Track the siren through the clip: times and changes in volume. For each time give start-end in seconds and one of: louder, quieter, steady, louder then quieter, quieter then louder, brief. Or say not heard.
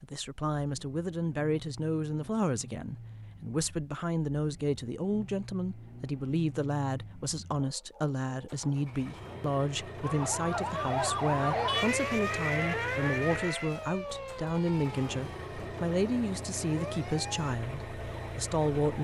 10.0-18.9 quieter.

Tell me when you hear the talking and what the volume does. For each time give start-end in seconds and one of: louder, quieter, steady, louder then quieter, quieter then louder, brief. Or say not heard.
0.0-18.9 steady.